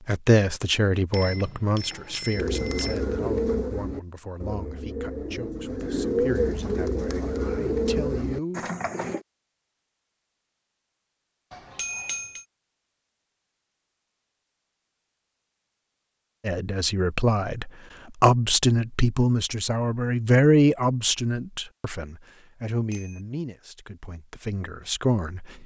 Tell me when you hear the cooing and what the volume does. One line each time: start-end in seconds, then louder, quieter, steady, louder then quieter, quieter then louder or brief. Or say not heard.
2.3-9.2 quieter then louder.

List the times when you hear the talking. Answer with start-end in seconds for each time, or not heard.
0.1-8.7, 16.4-25.5.